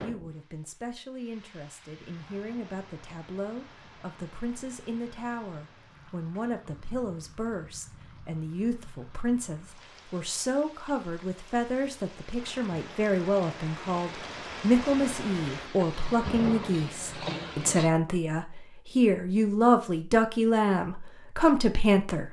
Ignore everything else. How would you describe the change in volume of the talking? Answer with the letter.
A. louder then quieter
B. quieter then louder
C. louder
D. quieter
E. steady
C.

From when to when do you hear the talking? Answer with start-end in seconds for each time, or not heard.
0.0-22.2.